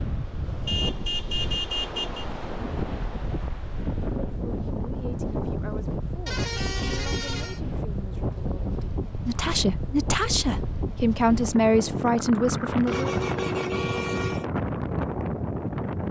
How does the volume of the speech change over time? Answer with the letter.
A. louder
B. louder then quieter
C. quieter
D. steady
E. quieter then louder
A.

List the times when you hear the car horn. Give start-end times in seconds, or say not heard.
0.7-2.2, 6.2-7.6, 12.8-14.4.